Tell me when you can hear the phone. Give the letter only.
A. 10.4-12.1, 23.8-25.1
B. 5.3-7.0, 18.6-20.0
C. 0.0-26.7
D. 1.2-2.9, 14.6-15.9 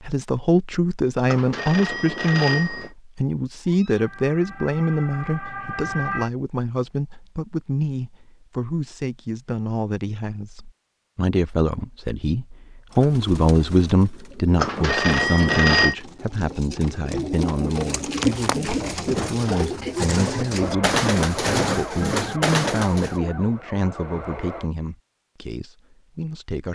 D.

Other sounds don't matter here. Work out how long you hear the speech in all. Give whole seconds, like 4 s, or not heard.
27 s.